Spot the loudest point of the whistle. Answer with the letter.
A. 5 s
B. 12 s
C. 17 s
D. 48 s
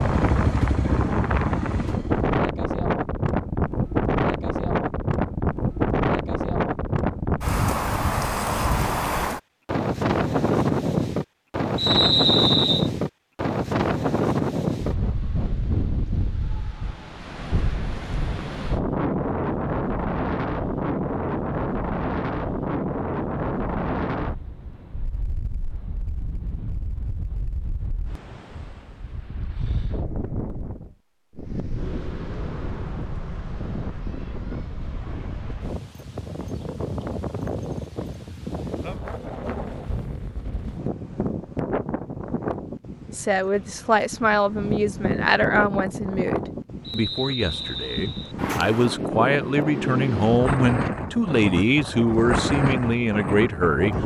B.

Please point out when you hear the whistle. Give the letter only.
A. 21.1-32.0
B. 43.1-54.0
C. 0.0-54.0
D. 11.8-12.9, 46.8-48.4
D.